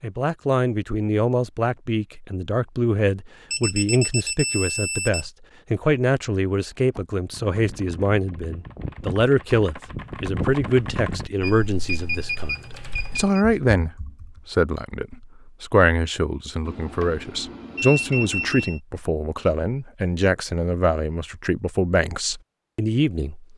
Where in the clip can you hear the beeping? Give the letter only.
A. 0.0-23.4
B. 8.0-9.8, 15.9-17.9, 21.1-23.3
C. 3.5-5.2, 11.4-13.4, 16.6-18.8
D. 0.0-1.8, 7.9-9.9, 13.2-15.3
C.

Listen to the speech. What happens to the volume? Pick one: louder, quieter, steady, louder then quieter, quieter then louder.
steady.